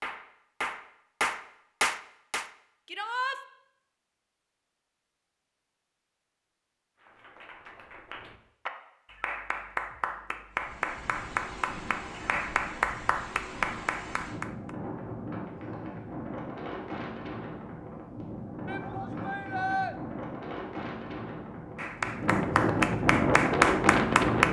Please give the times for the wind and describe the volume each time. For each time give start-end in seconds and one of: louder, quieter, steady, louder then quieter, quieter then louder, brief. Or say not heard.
10.5-24.4 louder.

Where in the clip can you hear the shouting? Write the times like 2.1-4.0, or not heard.
2.9-3.4, 18.6-19.9.